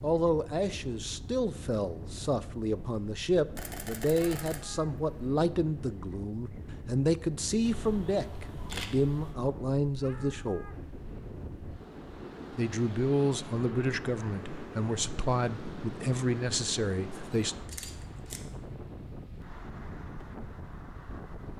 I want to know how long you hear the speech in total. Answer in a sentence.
You can hear the speech for 16 seconds altogether.